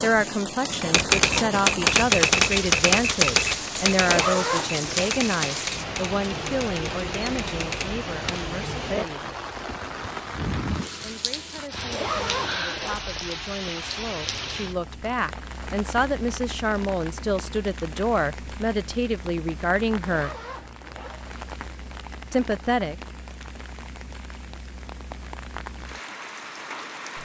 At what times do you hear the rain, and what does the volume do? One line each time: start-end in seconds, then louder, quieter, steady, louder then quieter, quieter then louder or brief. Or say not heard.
0.0-27.2 quieter.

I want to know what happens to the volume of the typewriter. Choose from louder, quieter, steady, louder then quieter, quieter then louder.
quieter.